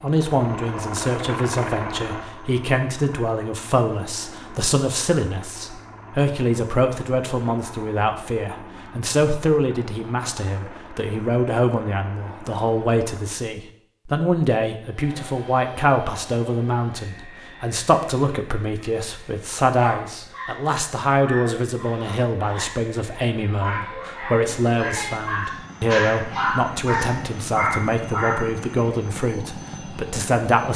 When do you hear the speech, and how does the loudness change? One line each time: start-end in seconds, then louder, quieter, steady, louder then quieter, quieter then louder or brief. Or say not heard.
0.0-30.7 steady.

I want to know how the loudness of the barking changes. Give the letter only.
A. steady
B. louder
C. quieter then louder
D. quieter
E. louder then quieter
B.